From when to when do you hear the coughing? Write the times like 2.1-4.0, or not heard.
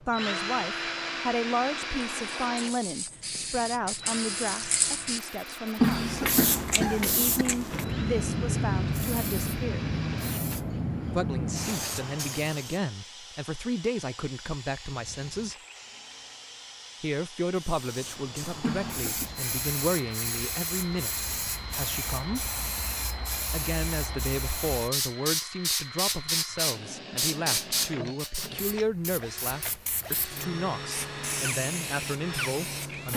5.8-7.2, 18.6-19.3.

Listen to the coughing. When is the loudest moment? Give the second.
6 s.